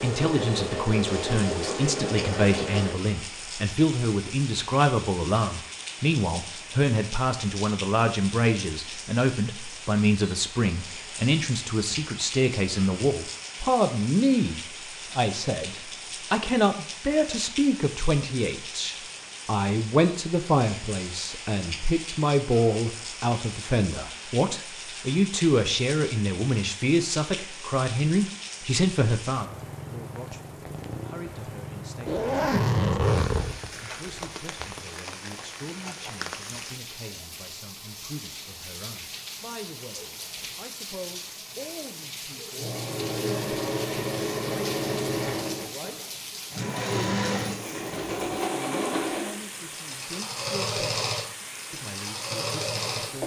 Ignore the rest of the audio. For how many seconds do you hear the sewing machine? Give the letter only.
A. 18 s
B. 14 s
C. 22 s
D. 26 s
B.